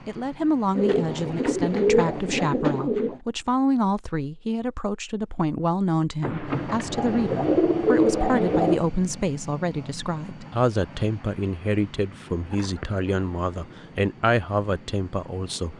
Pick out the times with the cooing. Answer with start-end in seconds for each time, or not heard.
0.8-3.2, 6.2-8.8, 12.2-13.8.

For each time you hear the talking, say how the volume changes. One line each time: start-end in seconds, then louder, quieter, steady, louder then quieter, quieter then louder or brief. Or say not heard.
0.1-15.7 steady.